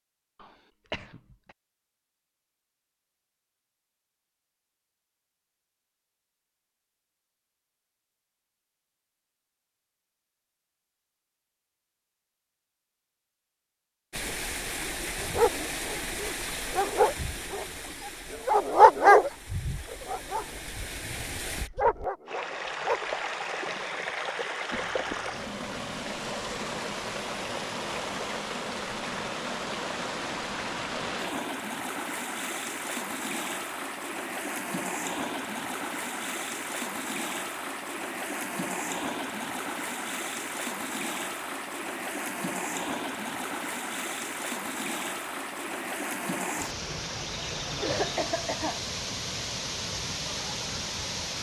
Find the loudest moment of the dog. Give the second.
19 s.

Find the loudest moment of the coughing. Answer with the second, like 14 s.
48 s.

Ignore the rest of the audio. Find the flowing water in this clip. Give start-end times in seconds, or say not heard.
14.1-51.3.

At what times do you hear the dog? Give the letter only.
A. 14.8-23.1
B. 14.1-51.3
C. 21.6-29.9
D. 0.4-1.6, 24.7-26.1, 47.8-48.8
A.